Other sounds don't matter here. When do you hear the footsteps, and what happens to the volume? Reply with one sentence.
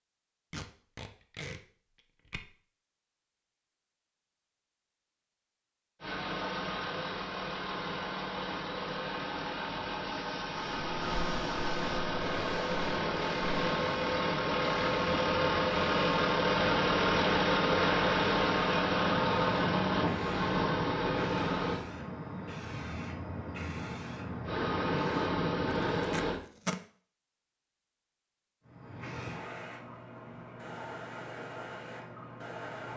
You can't hear the footsteps here.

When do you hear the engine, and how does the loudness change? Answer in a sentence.
The engine can be heard from 6.0 to 21.8 s, getting louder; and briefly from 24.4 to 26.4 s.